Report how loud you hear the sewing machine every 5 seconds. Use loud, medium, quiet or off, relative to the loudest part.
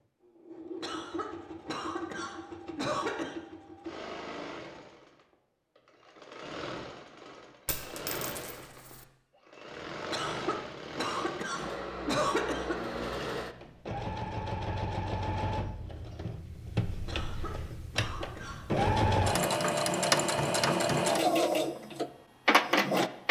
quiet, quiet, medium, medium, loud.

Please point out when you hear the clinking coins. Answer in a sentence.
The clinking coins can be heard from 7.7 to 9.1 s.